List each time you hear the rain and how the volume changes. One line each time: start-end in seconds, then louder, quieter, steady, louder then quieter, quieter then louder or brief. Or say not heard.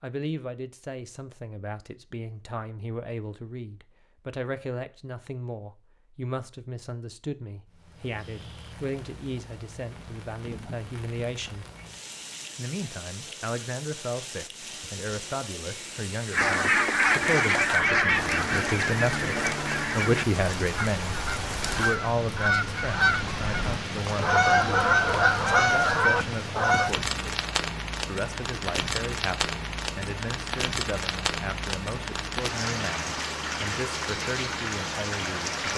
7.7-35.7 louder.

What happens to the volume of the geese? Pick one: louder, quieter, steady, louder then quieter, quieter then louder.
quieter then louder.